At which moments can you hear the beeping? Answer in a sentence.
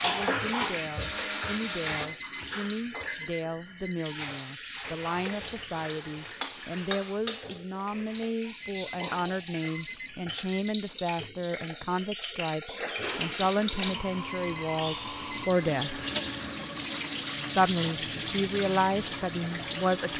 You can hear the beeping from 1.9 to 4.0 s, from 8.6 to 10.8 s and from 14.3 to 15.6 s.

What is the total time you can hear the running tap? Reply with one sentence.
The running tap can be heard for 20 seconds in total.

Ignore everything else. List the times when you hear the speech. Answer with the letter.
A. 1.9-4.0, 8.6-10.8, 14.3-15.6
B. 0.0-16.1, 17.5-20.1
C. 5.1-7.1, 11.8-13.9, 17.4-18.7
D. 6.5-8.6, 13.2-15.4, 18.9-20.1
B.